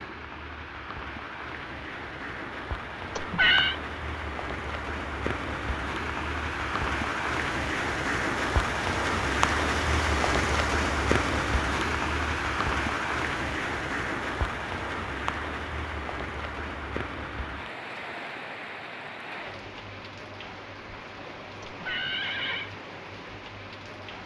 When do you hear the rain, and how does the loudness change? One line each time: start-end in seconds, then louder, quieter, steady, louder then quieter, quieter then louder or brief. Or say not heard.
0.0-24.2 louder then quieter.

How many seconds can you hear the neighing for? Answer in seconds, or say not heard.
2 s.